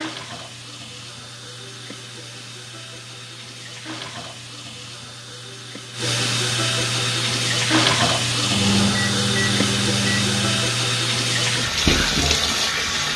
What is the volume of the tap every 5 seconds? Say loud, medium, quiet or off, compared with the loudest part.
quiet, loud, loud.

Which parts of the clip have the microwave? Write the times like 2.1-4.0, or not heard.
8.4-10.8.